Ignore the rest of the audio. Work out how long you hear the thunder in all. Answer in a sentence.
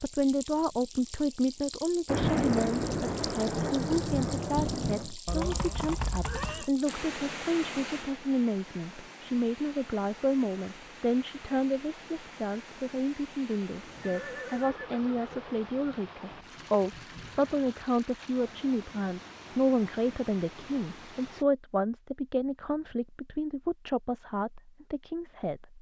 You can hear the thunder for 7 seconds altogether.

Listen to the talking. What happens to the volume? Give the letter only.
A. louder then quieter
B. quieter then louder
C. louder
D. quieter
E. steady
E.